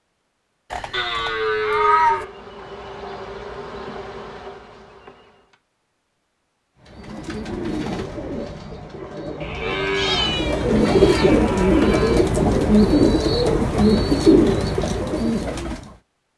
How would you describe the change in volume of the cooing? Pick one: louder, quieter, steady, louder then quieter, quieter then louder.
louder.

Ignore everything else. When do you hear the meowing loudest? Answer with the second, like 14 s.
2 s.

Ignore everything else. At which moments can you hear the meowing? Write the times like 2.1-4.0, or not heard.
0.7-2.2, 9.9-11.3.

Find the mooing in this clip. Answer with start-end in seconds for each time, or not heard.
0.9-2.3, 9.4-12.2.